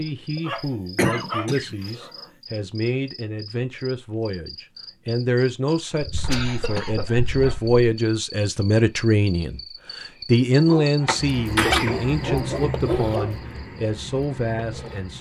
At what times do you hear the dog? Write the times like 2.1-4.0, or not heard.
0.3-2.3, 6.2-7.7, 10.6-13.4.